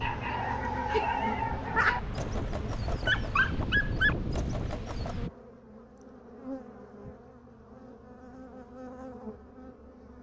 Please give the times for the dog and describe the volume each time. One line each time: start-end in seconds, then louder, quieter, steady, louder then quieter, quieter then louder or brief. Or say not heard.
0.0-5.2 quieter then louder.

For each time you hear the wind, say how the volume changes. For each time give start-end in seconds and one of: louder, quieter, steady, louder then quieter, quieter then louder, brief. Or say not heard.
0.0-5.3 louder.